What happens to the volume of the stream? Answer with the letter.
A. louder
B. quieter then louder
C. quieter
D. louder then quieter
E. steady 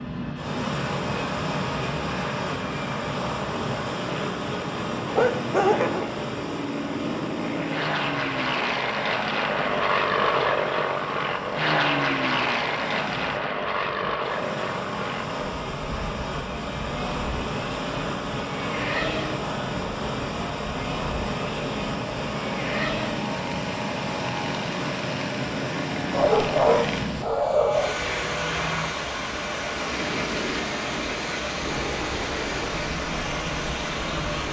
B.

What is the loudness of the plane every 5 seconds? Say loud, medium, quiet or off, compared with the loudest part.
medium, loud, loud, medium, medium, medium, medium.